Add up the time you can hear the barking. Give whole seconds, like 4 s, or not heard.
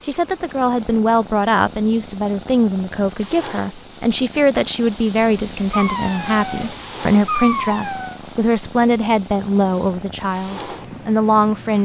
3 s.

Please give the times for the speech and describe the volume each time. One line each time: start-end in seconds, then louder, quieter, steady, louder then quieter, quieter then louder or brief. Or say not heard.
0.1-11.8 steady.